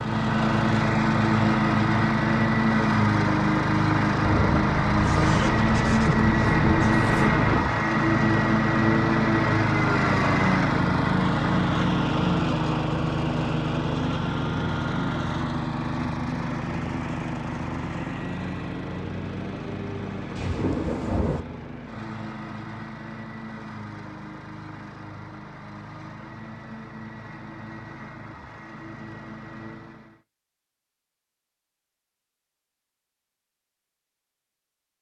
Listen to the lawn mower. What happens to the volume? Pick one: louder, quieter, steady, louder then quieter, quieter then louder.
quieter.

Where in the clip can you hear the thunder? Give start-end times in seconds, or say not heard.
4.2-7.7, 20.4-21.4.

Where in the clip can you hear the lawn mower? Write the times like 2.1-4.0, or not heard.
0.0-30.2.